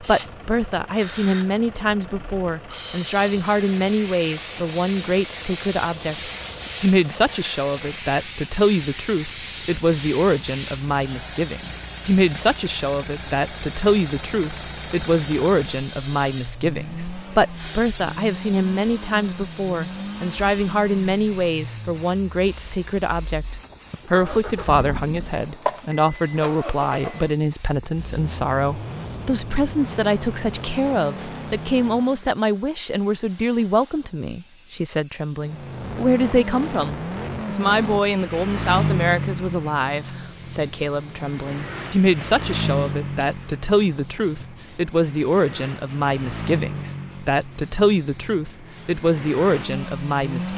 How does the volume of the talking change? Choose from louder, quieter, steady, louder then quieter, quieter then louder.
steady.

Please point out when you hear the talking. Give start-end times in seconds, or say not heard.
0.0-50.5.